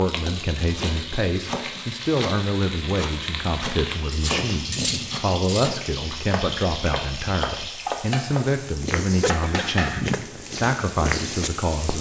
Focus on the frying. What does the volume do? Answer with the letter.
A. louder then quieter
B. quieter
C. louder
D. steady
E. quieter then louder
D.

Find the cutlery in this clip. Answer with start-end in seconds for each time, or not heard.
4.1-5.7.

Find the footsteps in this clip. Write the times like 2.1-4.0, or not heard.
8.6-11.9.